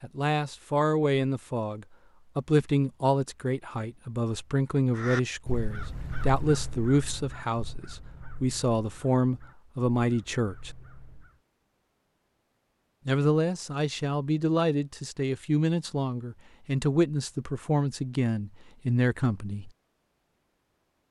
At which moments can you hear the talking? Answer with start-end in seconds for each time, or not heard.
0.0-10.7, 13.1-19.7.